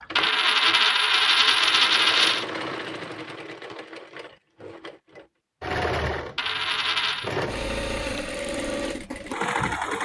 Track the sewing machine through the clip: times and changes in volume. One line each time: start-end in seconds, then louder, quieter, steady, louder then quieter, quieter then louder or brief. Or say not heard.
0.0-9.9 louder.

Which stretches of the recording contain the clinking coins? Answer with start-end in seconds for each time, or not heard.
0.1-2.5, 6.3-7.3.